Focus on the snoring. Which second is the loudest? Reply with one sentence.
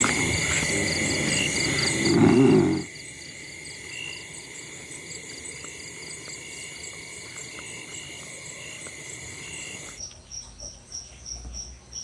The volume of the snoring peaks at 2 seconds.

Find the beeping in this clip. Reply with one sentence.
You can't hear the beeping here.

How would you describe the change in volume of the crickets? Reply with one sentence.
The loudness of the crickets goes down.